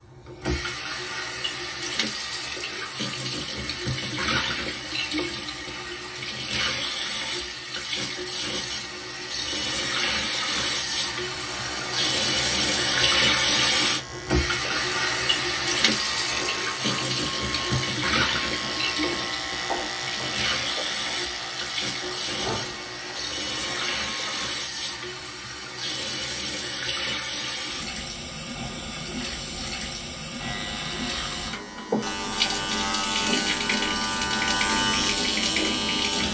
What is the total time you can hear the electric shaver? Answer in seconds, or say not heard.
19 s.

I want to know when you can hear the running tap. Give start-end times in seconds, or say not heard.
0.0-36.2.